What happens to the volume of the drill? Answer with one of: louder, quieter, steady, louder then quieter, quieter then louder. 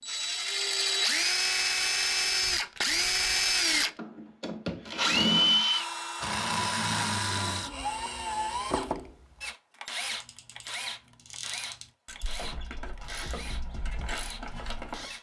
quieter.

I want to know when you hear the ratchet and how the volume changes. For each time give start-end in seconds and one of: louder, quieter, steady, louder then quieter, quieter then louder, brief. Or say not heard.
10.0-15.1 louder.